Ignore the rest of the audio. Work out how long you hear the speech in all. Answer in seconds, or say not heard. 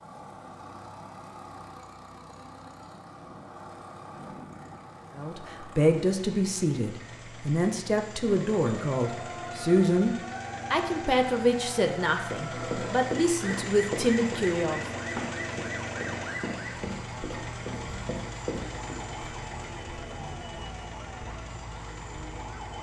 10 s.